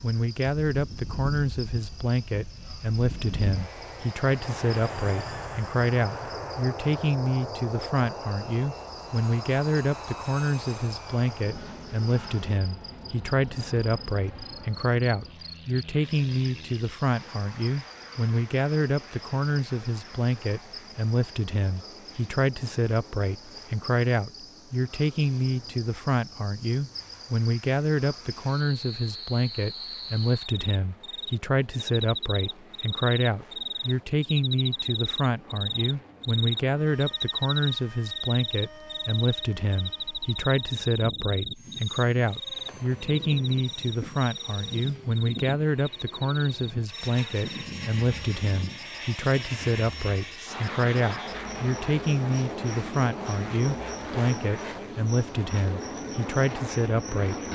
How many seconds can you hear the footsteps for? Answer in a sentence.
The footsteps can't be heard in this clip.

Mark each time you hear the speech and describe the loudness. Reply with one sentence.
You can hear the speech from 0.0 to 57.4 s, at a steady volume.